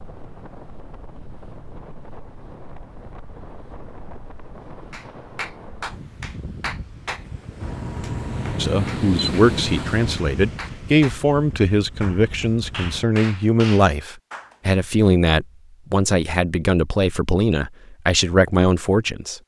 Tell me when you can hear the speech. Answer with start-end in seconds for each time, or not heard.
8.6-19.4.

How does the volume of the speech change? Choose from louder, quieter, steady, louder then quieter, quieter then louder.
steady.